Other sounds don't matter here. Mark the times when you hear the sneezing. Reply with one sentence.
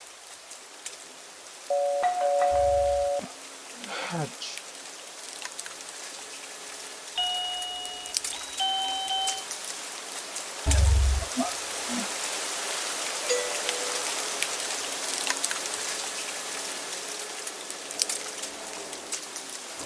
You can hear the sneezing from 2.5 to 4.6 s and from 10.7 to 12.1 s.